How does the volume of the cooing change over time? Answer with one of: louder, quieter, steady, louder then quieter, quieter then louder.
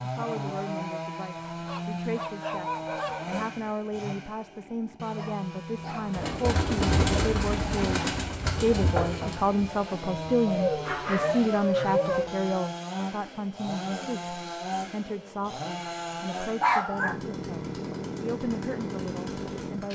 quieter.